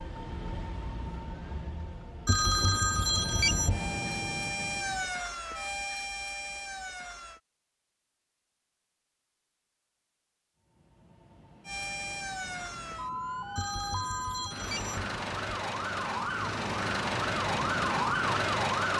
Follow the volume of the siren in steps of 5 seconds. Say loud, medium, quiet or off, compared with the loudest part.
medium, medium, medium, loud.